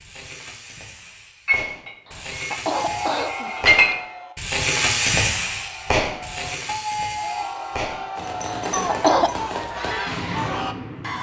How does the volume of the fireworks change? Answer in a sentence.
The loudness of the fireworks goes up, then down.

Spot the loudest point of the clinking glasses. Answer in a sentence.
The volume of the clinking glasses peaks at 4 seconds.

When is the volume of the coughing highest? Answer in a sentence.
The loudest moment of the coughing is at 9 seconds.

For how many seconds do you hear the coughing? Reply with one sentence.
You can hear the coughing for 3 seconds altogether.